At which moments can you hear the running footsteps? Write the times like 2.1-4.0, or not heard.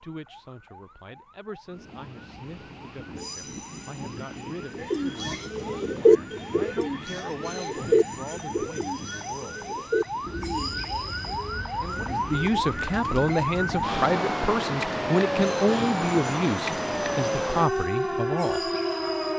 not heard.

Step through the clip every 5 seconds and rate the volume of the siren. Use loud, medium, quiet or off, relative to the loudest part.
quiet, quiet, loud, loud.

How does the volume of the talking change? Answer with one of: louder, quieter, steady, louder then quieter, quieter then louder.
louder.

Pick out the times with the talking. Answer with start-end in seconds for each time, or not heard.
0.0-9.7, 11.8-18.7.